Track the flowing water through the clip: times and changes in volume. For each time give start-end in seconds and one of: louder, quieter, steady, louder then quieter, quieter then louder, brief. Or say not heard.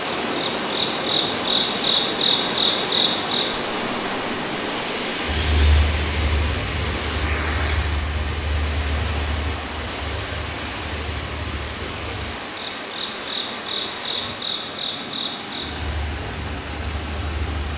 0.0-17.7 quieter.